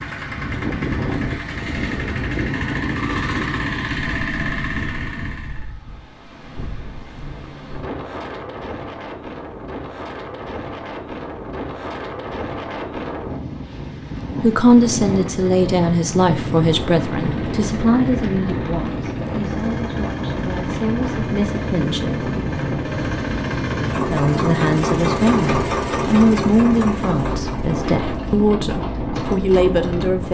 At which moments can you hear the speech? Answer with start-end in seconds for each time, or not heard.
14.4-22.2, 24.1-30.2.